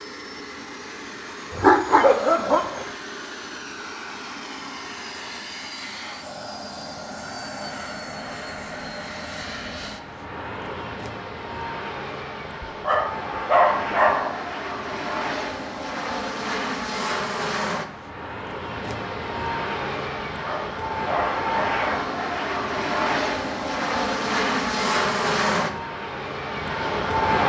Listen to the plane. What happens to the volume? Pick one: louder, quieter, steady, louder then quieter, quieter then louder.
louder.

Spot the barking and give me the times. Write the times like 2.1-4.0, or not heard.
1.5-2.9, 12.8-14.3, 20.4-21.9.